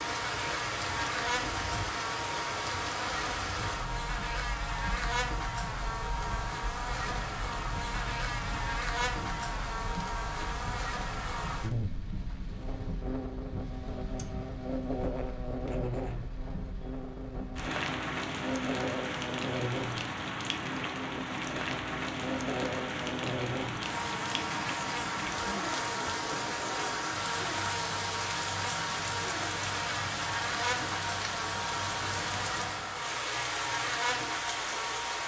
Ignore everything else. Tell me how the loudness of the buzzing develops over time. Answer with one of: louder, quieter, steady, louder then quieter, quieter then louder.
steady.